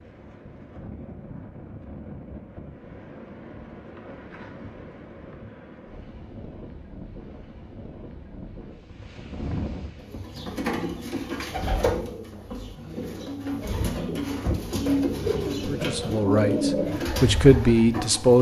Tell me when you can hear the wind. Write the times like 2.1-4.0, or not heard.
0.0-10.2.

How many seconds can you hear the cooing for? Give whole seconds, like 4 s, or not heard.
8 s.